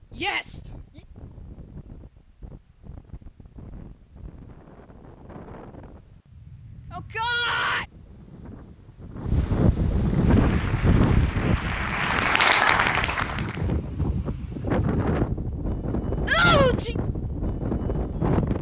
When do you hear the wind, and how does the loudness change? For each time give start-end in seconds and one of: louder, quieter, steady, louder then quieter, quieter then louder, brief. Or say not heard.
0.0-18.5 louder.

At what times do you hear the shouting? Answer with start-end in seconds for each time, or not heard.
0.1-1.0, 6.9-7.8, 16.2-16.9.